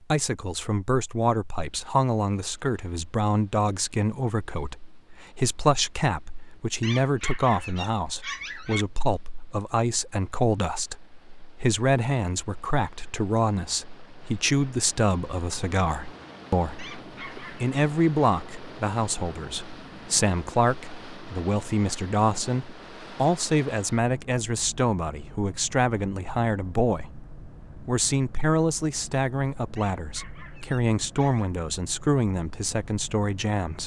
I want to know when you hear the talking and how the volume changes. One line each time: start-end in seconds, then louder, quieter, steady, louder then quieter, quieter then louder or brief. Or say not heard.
0.1-33.8 steady.